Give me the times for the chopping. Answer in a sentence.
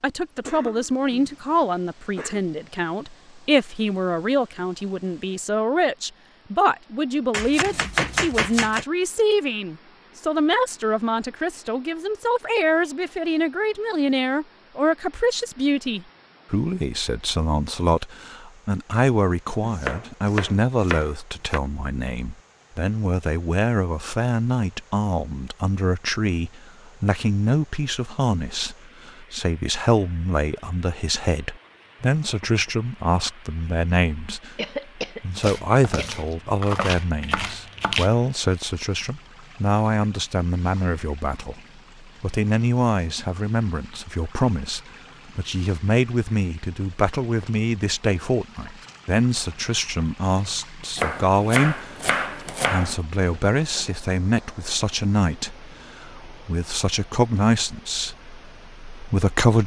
The chopping can be heard from 7.3 to 8.8 s, from 19.6 to 21.6 s, from 35.4 to 38.1 s and from 51.0 to 53.0 s.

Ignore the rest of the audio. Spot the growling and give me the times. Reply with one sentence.
You can't hear the growling here.